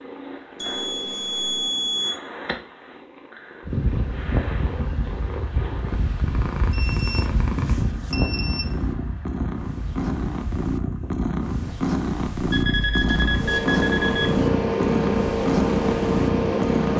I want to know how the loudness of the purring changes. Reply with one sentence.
The loudness of the purring goes up.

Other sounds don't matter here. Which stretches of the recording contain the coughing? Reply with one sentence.
The coughing can't be heard in this clip.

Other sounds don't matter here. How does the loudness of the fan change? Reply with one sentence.
The volume of the fan goes down, then up.